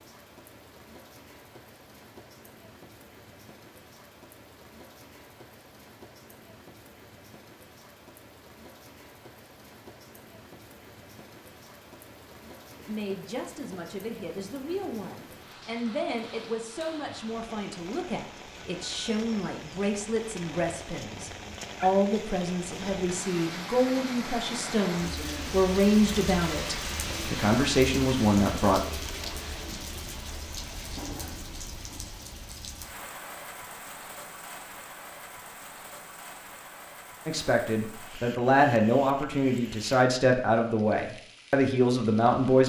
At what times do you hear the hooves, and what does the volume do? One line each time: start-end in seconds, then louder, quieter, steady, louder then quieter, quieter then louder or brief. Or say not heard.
not heard.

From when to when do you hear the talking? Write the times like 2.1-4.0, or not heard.
12.8-28.8, 37.2-42.6.